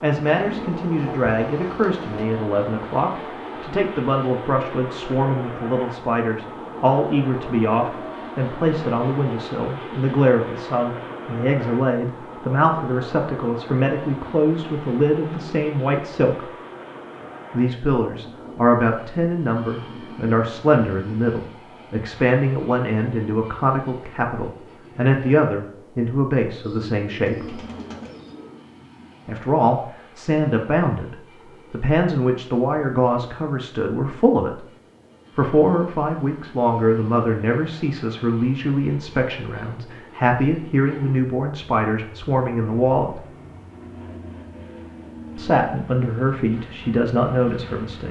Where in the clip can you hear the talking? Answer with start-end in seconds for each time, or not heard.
0.0-16.5, 17.5-27.6, 29.2-34.6, 35.4-43.2, 45.4-48.0.